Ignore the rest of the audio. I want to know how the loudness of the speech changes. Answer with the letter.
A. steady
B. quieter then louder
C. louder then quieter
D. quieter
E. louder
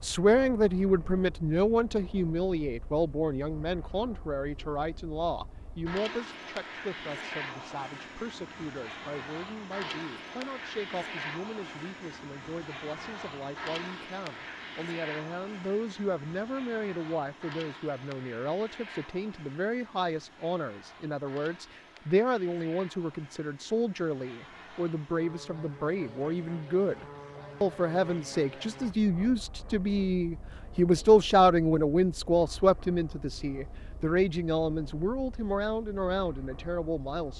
B.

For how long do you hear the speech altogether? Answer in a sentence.
You can hear the speech for 37 seconds altogether.